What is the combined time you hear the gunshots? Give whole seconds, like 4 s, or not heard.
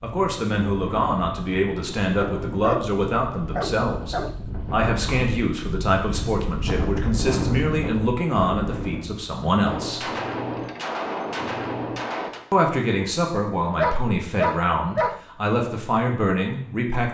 3 s.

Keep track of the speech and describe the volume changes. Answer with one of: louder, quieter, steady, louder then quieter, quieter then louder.
steady.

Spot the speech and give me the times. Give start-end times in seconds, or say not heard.
0.0-10.1, 12.5-17.1.